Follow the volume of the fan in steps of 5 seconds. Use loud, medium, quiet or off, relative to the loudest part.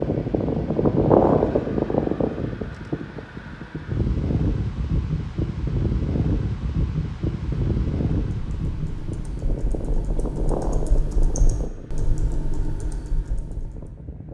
loud, medium, quiet.